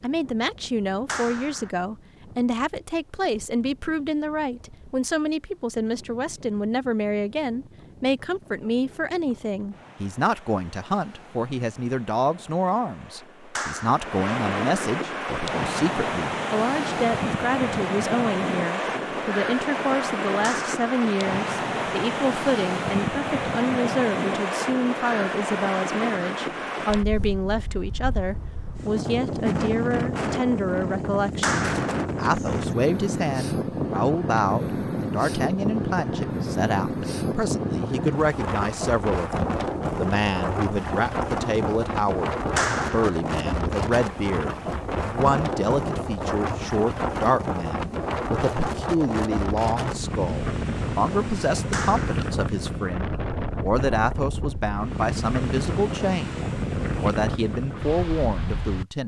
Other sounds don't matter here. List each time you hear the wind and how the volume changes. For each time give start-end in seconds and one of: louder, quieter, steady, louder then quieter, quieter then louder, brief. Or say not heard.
0.0-58.9 louder.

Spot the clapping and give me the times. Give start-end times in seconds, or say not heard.
1.1-1.7, 13.6-14.1, 20.4-20.8, 31.4-31.9, 42.5-43.2, 51.7-52.3.